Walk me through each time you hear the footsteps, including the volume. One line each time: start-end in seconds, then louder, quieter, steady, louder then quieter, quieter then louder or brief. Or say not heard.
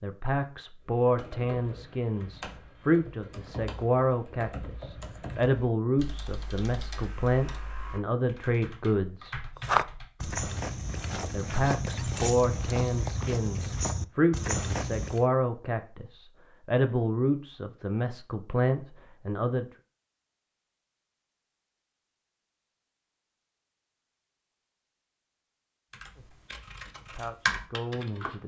9.6-15.2 steady.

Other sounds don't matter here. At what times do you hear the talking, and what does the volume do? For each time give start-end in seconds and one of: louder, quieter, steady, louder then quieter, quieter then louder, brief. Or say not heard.
0.0-9.4 steady
11.3-19.6 steady
27.0-28.4 brief.